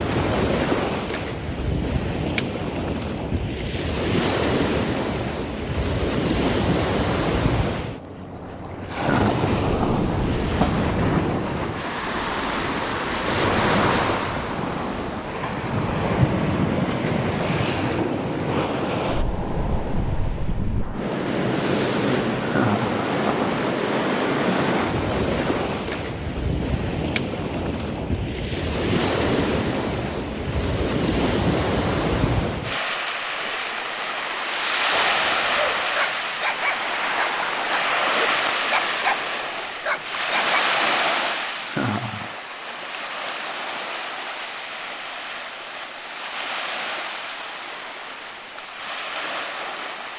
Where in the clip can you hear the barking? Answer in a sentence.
You can hear the barking from 34.9 to 40.6 s.